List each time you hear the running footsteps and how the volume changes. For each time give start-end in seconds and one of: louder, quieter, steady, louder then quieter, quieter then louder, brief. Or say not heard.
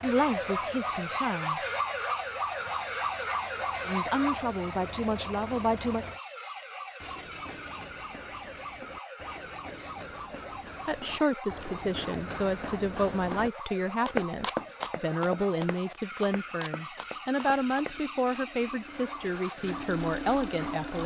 7.0-17.9 louder then quieter.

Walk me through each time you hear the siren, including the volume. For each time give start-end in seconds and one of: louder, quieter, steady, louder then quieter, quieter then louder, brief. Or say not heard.
0.0-21.0 quieter.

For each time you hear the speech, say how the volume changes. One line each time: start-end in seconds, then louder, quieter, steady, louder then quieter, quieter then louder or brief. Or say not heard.
0.0-1.6 brief
3.9-6.0 brief
10.8-21.0 steady.